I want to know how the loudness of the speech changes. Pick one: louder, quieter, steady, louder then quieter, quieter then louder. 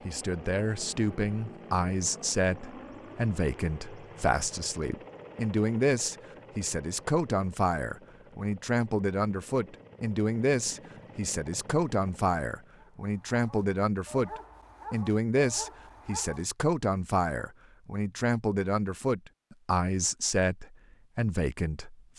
steady.